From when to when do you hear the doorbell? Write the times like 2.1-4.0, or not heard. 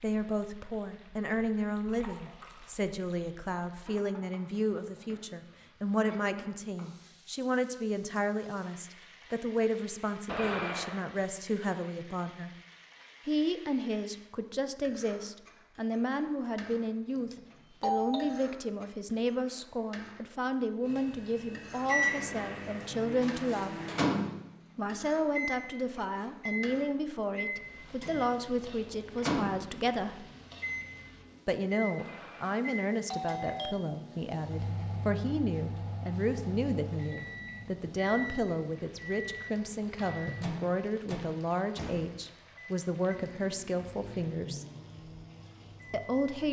10.2-11.2, 17.1-18.6, 31.9-33.8.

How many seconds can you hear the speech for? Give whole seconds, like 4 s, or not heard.
42 s.